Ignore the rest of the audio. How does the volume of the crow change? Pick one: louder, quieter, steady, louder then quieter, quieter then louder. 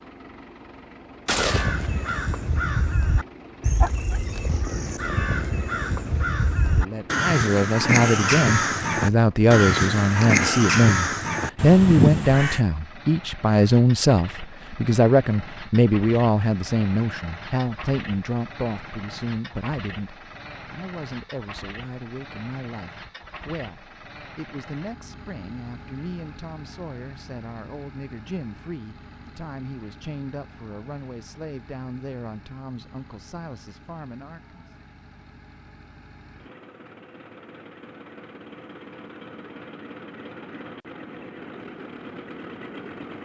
louder.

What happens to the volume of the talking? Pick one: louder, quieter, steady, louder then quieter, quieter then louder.
quieter.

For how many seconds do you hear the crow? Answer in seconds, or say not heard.
11 s.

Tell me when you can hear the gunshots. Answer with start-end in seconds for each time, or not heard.
1.2-2.2.